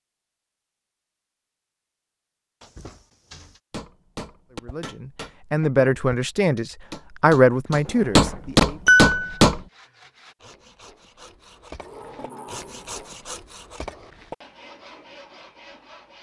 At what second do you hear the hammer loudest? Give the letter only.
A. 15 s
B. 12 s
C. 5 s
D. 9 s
D.